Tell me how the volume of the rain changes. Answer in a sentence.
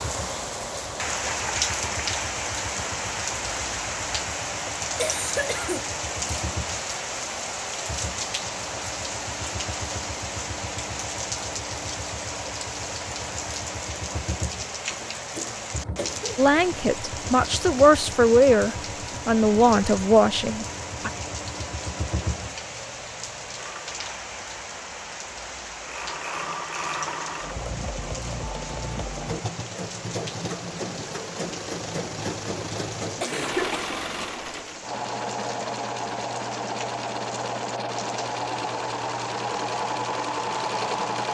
The volume of the rain goes down.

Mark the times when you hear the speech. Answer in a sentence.
You can hear the speech from 16.4 to 21.1 s.